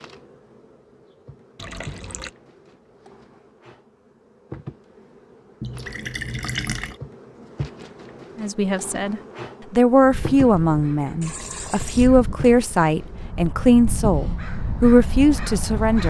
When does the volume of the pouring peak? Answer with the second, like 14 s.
7 s.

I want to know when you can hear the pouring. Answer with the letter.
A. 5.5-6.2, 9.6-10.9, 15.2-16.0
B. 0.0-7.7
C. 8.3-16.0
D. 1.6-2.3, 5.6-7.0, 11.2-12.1
D.